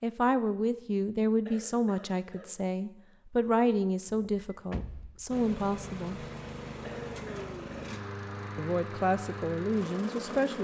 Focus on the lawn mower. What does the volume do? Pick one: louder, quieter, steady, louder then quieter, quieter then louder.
steady.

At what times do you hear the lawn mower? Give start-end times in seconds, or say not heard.
5.3-10.5.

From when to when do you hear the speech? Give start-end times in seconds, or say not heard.
0.0-6.2, 8.6-10.5.